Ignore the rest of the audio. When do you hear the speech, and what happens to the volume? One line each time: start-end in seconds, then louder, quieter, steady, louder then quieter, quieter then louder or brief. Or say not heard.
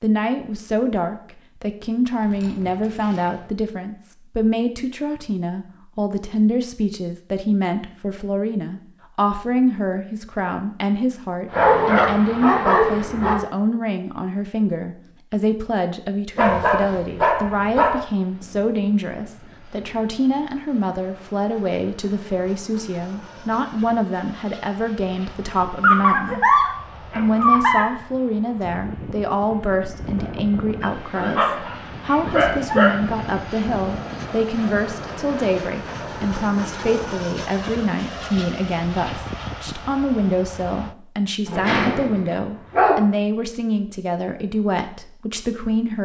0.0-46.0 steady.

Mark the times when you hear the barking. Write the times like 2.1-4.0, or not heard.
2.3-3.2, 11.5-13.3, 16.4-18.0, 25.8-27.9, 30.8-33.2, 41.5-43.0.